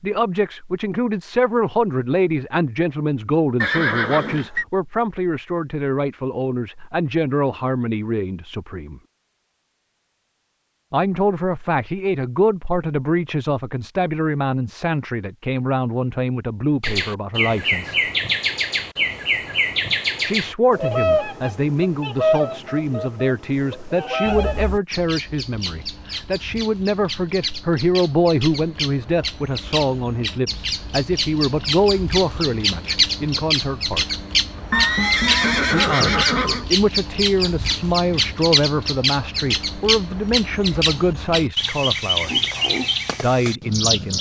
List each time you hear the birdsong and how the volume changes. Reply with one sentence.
You can hear the birdsong from 16.8 to 44.1 s, getting quieter then louder.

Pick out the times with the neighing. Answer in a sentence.
You can hear the neighing from 3.6 to 4.7 s, from 24.2 to 24.8 s and from 34.7 to 36.6 s.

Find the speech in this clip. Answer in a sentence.
The speech can be heard from 0.0 to 9.0 s, from 10.9 to 18.0 s, from 20.2 to 34.1 s, from 35.7 to 42.4 s and from 43.2 to 44.1 s.